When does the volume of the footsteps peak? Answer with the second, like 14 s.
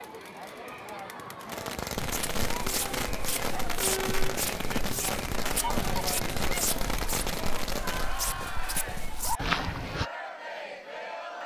9 s.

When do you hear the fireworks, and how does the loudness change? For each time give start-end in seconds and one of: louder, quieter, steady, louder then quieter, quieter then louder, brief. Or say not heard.
1.4-8.2 steady.